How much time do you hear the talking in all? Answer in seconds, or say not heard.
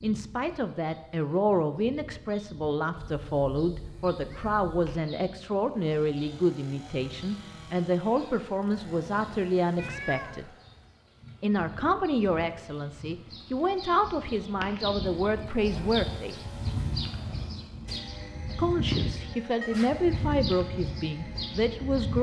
19 s.